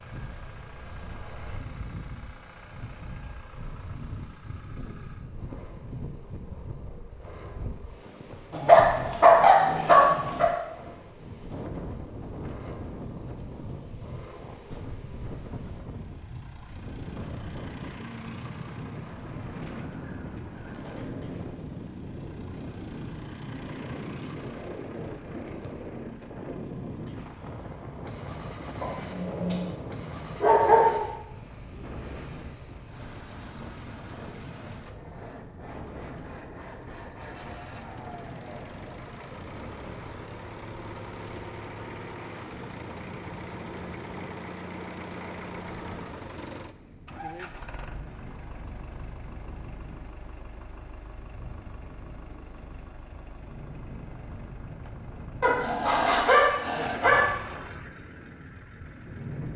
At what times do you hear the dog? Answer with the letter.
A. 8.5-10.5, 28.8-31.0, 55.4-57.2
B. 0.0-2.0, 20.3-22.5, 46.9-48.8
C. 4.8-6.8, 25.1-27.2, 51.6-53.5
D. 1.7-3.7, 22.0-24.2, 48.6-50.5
A.